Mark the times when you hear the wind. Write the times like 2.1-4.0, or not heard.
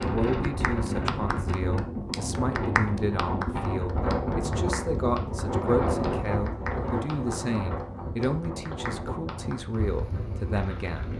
0.0-11.1.